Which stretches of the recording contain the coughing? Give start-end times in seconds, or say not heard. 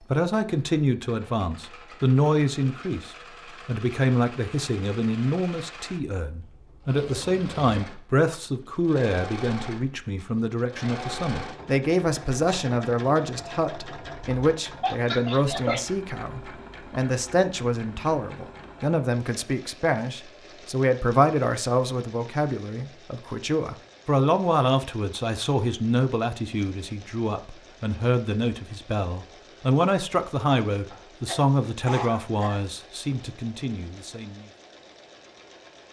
14.8-15.8, 30.9-32.6.